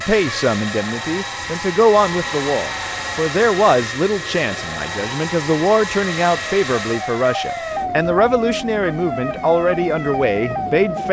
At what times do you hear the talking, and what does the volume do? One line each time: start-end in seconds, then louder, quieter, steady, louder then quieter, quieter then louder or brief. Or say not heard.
0.0-11.0 steady.